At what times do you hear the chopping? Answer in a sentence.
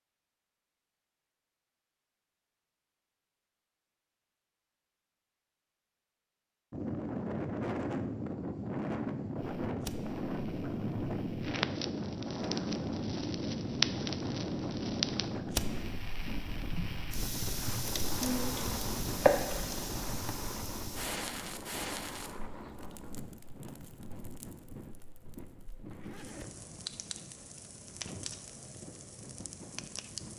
You can hear the chopping from 18.2 to 20.1 s.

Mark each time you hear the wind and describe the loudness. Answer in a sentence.
You can hear the wind from 6.7 to 30.3 s, getting quieter.